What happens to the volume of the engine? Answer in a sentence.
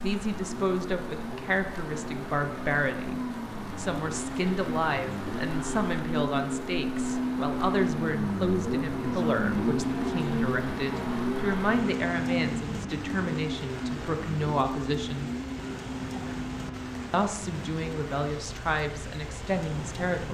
The loudness of the engine goes up, then down.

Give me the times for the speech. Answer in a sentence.
You can hear the speech from 0.0 to 15.3 s and from 17.1 to 20.2 s.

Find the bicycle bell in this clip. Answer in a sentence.
You can't hear the bicycle bell here.